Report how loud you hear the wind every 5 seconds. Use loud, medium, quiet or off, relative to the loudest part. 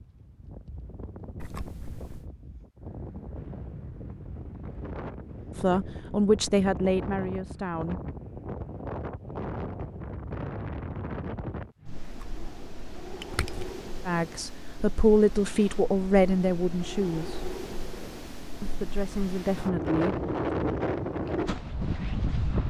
quiet, medium, medium, medium, loud.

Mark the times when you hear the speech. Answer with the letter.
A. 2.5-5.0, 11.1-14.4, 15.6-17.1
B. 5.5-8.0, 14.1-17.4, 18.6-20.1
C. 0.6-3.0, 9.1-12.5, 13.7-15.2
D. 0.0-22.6
B.